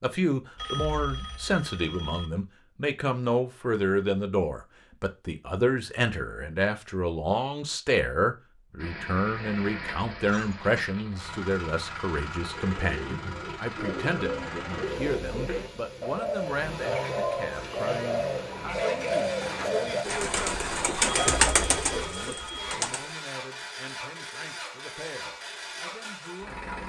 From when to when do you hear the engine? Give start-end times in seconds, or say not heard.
8.8-26.8.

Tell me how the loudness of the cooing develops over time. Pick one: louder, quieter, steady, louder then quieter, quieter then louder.
louder.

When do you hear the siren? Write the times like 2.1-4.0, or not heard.
not heard.